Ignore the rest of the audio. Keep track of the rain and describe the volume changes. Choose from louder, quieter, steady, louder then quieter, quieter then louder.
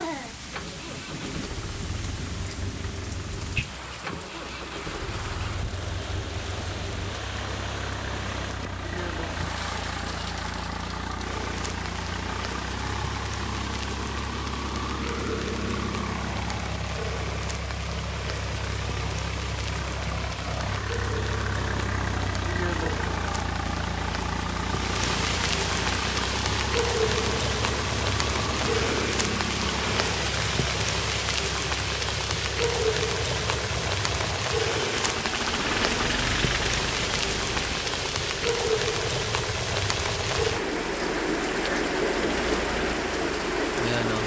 louder.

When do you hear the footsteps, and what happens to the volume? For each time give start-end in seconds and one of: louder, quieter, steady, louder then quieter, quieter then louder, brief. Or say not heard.
not heard.